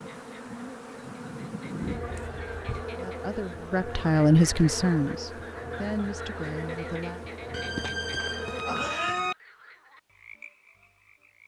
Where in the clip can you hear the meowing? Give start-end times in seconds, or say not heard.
2.0-3.0, 7.5-9.3.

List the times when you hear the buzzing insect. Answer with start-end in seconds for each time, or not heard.
0.0-9.1.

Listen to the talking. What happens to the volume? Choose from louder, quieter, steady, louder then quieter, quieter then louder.
louder then quieter.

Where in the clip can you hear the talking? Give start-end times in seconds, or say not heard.
3.0-7.2.